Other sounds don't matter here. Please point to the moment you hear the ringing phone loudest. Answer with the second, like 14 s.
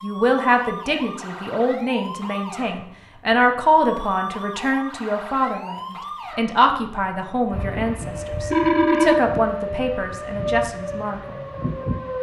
9 s.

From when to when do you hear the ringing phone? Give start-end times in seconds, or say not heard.
7.5-9.2.